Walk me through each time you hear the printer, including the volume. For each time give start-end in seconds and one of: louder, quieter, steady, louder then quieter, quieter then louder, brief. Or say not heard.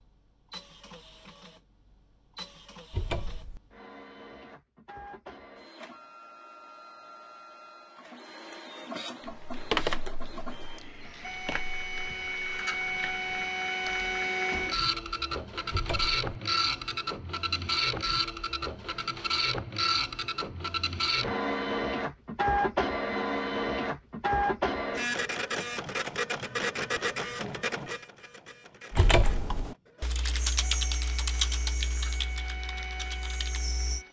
0.0-34.0 louder then quieter.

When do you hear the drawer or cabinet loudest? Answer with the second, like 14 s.
29 s.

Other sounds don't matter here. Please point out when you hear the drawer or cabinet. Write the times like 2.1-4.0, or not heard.
2.9-3.6, 15.7-16.2, 28.9-29.6.